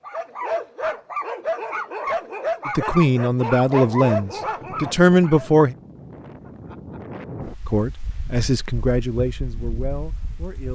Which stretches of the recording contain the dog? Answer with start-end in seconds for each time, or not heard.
0.0-5.5.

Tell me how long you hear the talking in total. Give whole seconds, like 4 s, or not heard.
6 s.